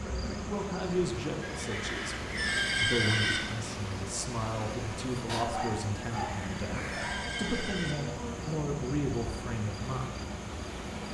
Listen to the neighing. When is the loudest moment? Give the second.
3 s.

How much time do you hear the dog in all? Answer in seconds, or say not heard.
2 s.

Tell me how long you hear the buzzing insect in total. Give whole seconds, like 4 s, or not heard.
11 s.